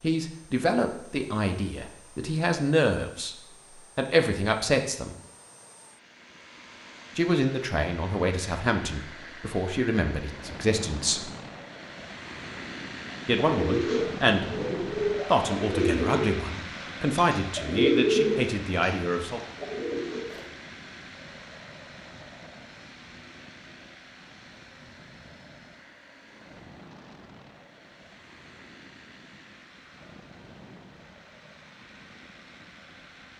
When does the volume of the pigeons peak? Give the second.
18 s.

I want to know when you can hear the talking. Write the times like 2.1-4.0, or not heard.
0.0-3.4, 4.0-5.2, 7.2-11.3, 13.2-14.4, 15.2-19.4.